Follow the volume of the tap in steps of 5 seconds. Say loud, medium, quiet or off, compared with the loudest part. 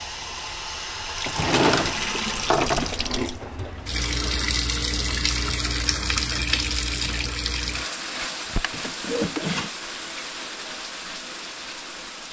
loud, loud, medium.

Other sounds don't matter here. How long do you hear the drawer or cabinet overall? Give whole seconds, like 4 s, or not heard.
3 s.